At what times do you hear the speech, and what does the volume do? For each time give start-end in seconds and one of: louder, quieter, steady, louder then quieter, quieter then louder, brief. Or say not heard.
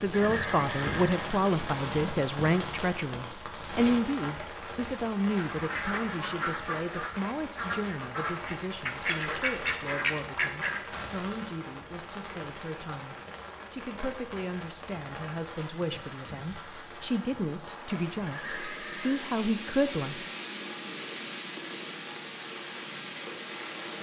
0.0-20.2 quieter then louder.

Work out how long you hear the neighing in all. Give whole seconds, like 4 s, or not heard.
2 s.